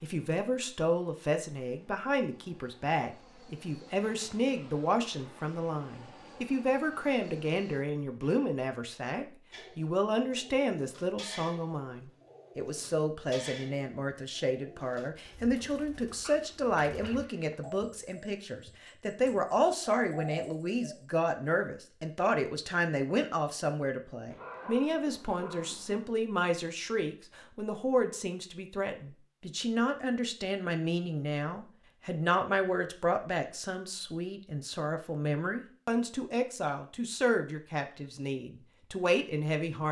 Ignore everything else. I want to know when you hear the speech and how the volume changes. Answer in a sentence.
You can hear the speech from 0.0 to 39.8 s, at a steady volume.